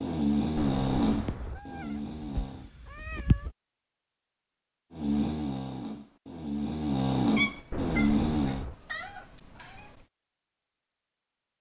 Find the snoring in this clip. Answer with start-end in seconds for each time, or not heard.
0.0-2.7, 4.9-8.7.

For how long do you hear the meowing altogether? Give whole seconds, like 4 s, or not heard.
5 s.